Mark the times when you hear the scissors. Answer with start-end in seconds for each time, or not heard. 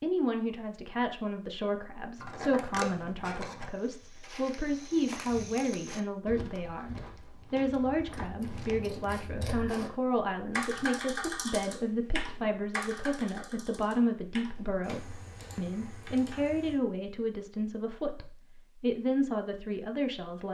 2.1-3.7, 8.1-9.9, 14.6-15.7.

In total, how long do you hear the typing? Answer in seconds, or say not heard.
6 s.